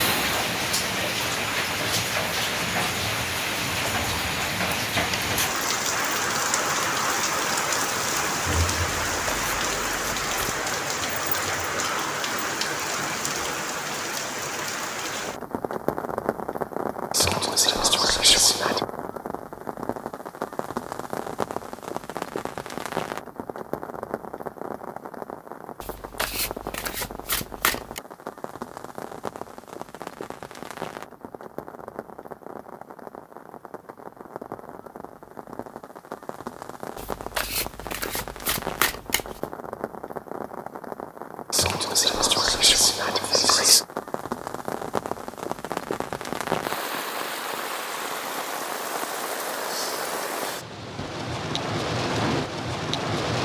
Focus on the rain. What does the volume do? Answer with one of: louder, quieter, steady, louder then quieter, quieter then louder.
quieter then louder.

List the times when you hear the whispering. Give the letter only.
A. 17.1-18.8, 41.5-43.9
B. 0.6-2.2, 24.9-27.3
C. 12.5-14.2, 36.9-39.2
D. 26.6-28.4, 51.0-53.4
A.